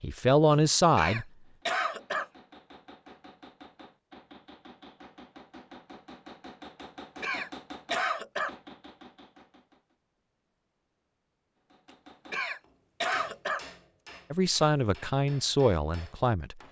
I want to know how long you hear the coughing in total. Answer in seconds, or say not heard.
4 s.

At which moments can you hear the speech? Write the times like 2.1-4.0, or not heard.
0.0-1.2, 14.3-16.6.